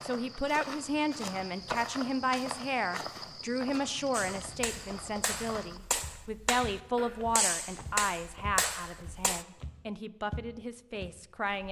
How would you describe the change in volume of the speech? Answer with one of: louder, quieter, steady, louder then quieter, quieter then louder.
quieter.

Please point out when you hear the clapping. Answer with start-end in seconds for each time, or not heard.
4.1-9.4.